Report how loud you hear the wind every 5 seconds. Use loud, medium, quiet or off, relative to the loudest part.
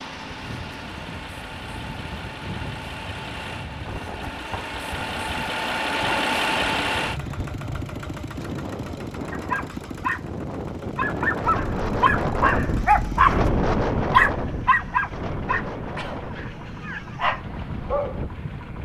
medium, medium, loud, medium.